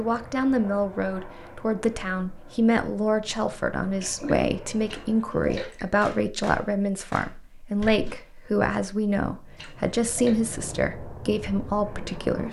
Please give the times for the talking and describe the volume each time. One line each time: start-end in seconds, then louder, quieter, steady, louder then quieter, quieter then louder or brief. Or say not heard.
0.0-12.4 steady.